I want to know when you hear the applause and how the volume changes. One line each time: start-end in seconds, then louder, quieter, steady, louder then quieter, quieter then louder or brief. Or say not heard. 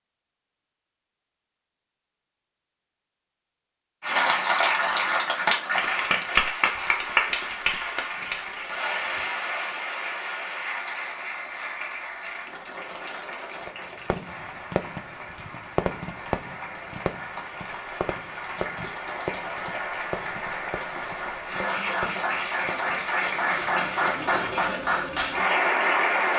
4.0-26.3 quieter then louder.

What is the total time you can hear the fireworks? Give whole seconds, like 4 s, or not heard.
9 s.